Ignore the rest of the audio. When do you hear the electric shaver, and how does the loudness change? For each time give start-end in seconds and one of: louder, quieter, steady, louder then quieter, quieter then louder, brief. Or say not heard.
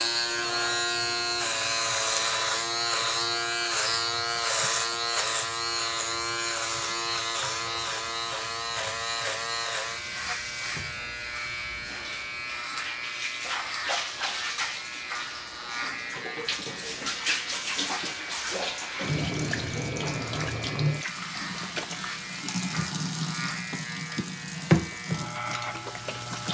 0.0-26.4 quieter.